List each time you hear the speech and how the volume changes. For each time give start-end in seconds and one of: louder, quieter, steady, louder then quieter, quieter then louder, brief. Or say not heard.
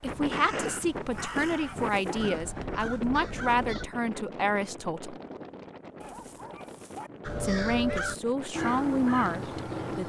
0.0-5.2 steady
7.4-10.0 brief.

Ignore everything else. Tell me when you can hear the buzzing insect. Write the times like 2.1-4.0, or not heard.
not heard.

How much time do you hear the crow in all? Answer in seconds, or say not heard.
7 s.